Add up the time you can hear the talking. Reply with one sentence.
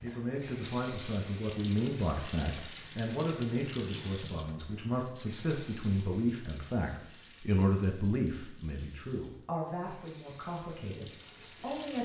The talking can be heard for 12 seconds in total.